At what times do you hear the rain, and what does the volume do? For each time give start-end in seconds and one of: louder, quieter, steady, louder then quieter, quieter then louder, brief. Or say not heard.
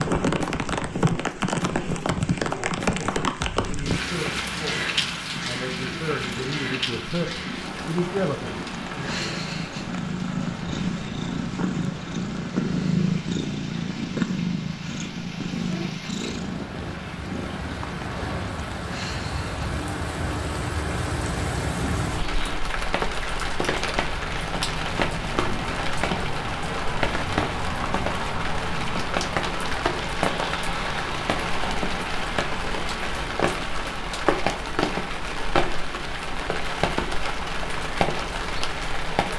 0.0-39.3 quieter then louder.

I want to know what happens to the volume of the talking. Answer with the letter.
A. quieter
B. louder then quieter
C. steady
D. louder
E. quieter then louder
D.